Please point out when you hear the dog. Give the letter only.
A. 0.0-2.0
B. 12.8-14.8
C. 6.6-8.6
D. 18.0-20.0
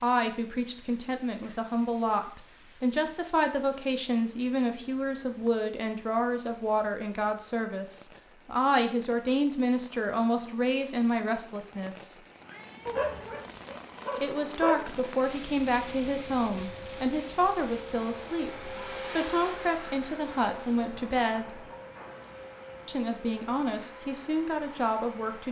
B.